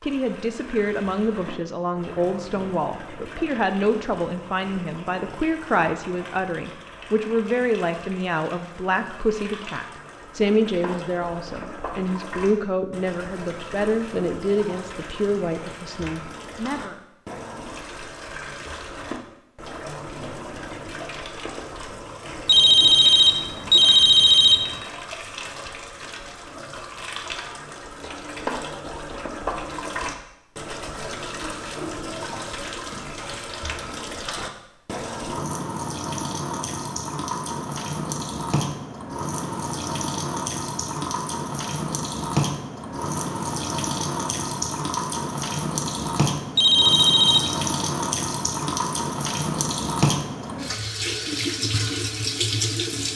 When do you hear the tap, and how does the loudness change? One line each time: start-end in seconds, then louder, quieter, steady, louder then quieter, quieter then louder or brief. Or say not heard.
0.0-53.1 louder.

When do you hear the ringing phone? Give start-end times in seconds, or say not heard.
22.4-24.8, 46.5-47.6.